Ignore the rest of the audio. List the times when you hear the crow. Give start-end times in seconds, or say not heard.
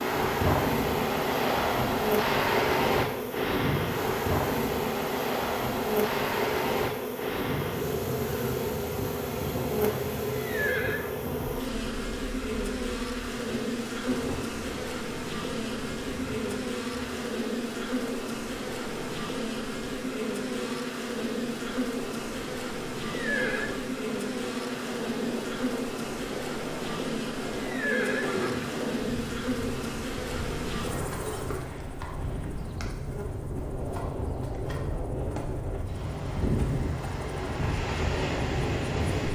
not heard.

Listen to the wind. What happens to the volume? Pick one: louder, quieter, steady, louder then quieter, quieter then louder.
quieter then louder.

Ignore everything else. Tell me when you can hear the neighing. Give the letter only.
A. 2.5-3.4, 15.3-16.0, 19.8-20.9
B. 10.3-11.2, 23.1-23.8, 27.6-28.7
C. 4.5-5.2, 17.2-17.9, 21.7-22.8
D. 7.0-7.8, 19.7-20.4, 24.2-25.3
B.